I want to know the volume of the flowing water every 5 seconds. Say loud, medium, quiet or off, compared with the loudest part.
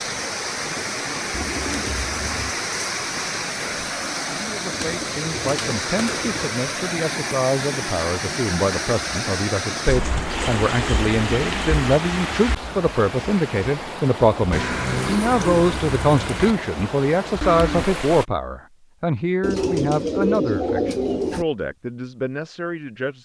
loud, loud, loud, loud, off.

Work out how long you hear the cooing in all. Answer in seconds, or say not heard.
9 s.